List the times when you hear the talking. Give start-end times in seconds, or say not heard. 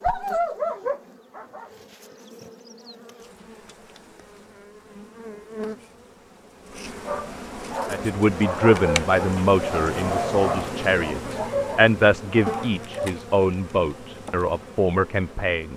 7.9-15.7.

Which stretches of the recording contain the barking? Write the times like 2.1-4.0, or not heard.
0.0-1.7, 7.0-13.1.